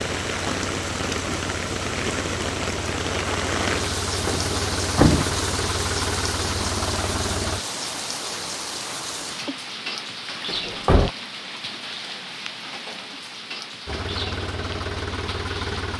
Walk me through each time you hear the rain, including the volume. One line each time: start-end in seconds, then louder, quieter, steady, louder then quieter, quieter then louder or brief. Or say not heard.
0.0-15.9 quieter.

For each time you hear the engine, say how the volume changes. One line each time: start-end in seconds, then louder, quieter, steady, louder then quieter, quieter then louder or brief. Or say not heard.
0.0-7.6 louder
13.8-15.9 brief.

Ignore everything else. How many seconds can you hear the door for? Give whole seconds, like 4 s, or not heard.
2 s.